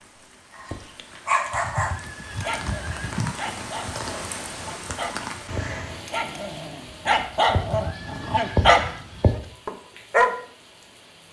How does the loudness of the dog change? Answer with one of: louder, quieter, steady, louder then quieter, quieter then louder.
quieter then louder.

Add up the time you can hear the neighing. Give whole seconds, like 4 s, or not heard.
3 s.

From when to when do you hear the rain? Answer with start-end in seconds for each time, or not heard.
0.0-11.2.